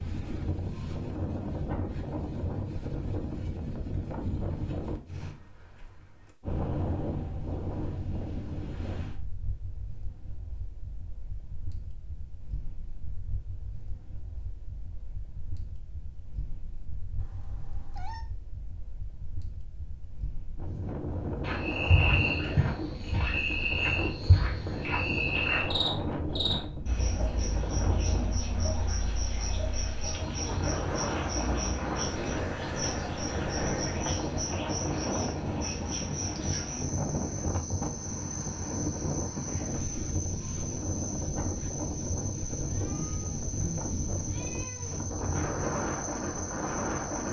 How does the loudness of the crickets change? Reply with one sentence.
The loudness of the crickets goes down.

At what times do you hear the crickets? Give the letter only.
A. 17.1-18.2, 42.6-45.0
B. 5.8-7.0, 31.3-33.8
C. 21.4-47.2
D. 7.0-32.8
C.